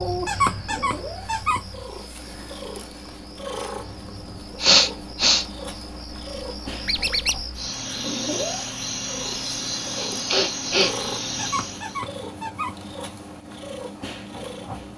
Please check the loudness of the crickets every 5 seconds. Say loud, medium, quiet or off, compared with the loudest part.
quiet, loud, loud.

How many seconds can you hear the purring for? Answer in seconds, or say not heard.
15 s.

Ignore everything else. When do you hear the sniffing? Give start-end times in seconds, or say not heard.
4.6-5.5, 9.9-10.9.